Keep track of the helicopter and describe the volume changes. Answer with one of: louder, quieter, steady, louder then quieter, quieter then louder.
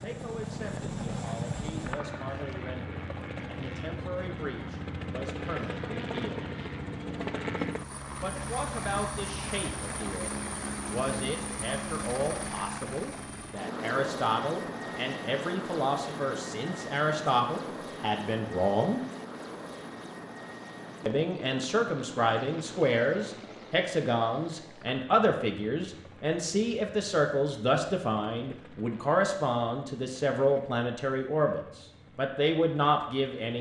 quieter.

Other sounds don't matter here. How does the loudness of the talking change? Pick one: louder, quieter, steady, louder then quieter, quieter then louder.
louder.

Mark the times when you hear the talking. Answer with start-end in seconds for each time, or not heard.
0.0-6.5, 8.2-19.0, 21.1-33.5.